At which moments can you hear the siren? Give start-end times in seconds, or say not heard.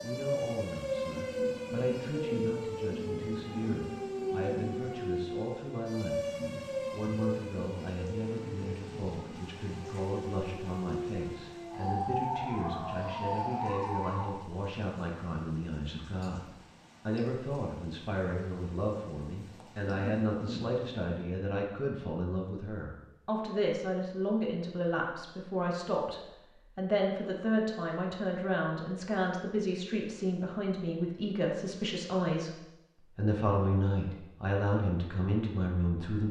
0.0-14.4.